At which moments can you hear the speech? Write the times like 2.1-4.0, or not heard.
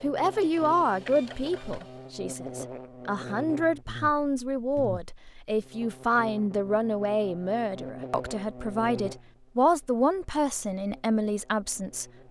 0.0-12.2.